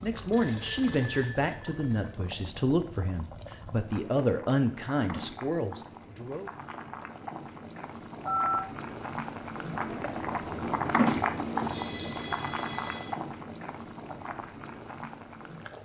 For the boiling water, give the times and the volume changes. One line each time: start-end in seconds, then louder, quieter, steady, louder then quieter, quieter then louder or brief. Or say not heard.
0.0-15.8 louder then quieter.